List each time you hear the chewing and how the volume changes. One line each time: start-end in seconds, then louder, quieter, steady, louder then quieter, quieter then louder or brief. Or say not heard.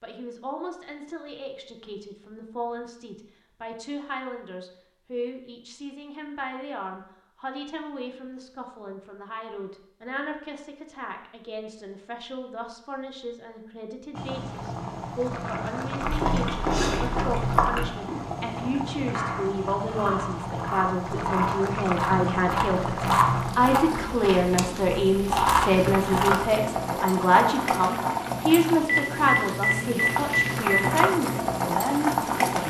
16.0-26.5 quieter then louder.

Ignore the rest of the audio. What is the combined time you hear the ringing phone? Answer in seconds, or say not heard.
2 s.